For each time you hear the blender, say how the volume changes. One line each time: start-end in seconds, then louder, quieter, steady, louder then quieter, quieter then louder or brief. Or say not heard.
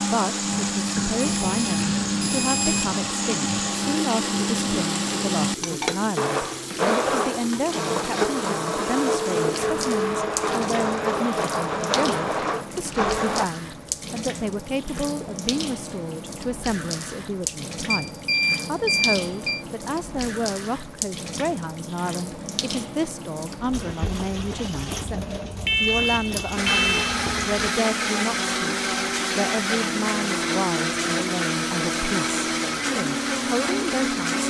0.0-13.5 steady
26.6-34.4 steady.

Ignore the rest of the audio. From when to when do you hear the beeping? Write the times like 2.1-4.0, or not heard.
0.9-3.0, 17.9-19.6, 25.6-27.1.